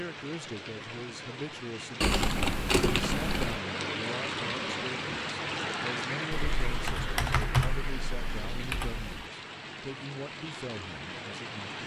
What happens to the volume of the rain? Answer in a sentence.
The loudness of the rain goes up, then down.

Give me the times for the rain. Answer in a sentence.
You can hear the rain from 0.0 to 11.8 s.